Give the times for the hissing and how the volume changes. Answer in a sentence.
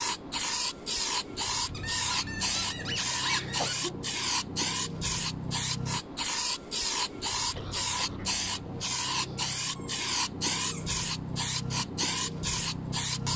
The hissing can be heard from 0.0 to 13.3 s, at a steady volume.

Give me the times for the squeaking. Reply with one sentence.
You can hear the squeaking from 1.7 to 3.8 s and from 9.8 to 11.0 s.